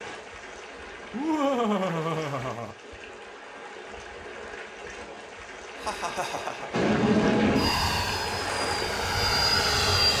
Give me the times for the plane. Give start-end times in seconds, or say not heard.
6.7-10.1.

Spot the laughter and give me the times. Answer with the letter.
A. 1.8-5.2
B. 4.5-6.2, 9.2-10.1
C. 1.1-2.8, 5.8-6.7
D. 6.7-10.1
C.